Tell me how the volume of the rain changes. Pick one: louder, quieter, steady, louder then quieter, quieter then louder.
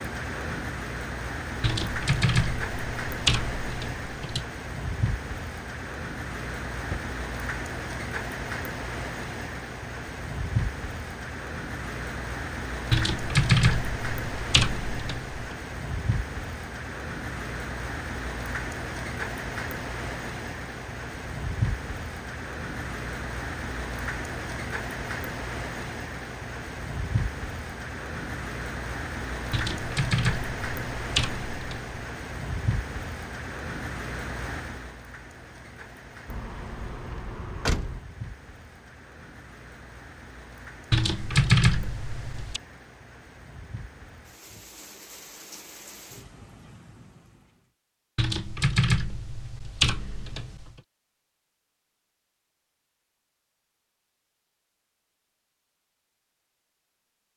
quieter.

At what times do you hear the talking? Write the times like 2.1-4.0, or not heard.
not heard.